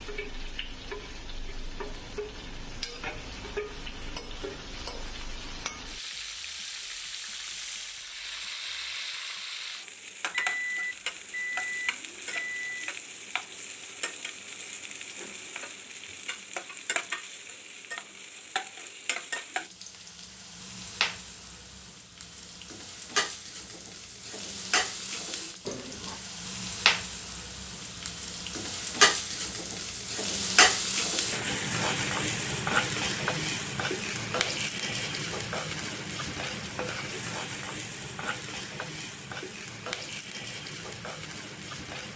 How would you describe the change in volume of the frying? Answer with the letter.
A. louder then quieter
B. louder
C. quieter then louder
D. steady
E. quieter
A.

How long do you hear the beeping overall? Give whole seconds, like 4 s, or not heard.
3 s.